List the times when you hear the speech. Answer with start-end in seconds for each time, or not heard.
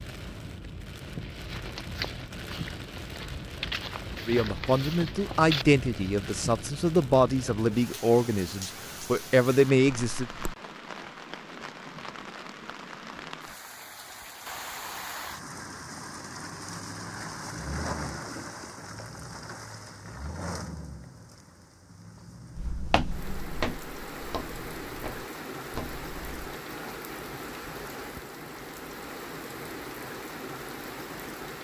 4.2-10.3.